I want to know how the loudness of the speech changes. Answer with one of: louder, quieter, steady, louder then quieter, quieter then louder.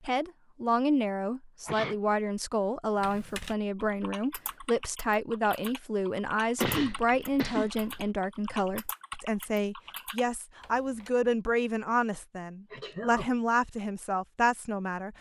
steady.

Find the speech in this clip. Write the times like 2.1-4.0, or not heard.
0.1-15.1.